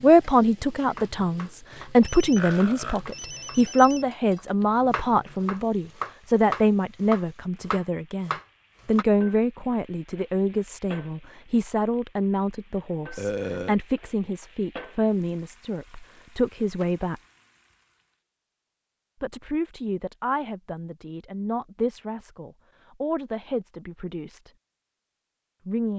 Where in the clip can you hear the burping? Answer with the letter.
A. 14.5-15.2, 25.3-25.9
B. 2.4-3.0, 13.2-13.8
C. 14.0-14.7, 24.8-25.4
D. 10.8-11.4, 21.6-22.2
B.